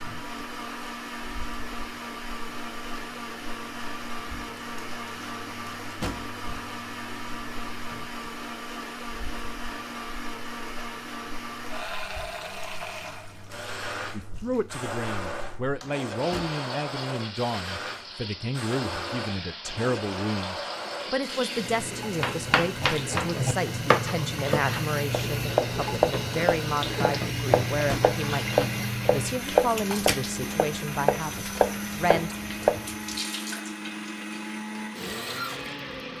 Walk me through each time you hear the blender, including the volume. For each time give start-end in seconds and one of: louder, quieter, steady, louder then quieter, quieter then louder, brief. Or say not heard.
0.0-36.1 steady.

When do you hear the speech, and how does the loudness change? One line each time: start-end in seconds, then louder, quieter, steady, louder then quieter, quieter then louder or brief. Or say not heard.
14.1-32.4 steady.